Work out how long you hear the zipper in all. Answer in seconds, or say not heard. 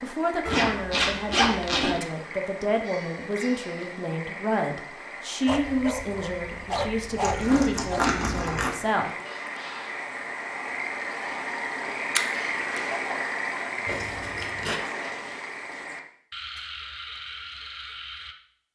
4 s.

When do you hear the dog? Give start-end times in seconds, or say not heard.
5.5-8.1.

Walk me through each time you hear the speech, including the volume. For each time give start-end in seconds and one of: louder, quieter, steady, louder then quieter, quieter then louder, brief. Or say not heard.
0.0-9.2 steady.